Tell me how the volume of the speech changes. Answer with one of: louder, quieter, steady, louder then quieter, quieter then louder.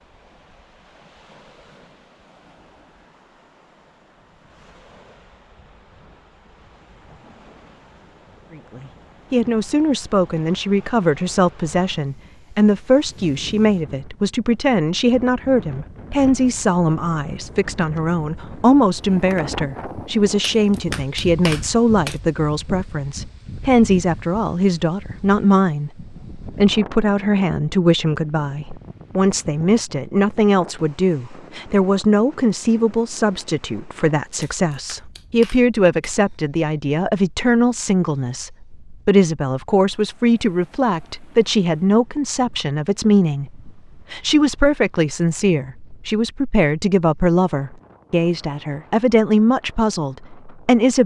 steady.